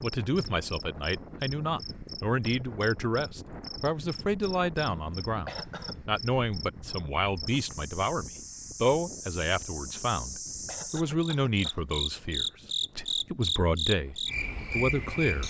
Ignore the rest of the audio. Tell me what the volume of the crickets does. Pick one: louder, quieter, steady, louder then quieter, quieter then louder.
louder.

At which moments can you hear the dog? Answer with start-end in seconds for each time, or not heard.
not heard.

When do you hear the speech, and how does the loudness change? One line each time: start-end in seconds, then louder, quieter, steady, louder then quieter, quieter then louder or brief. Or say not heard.
0.0-15.4 steady.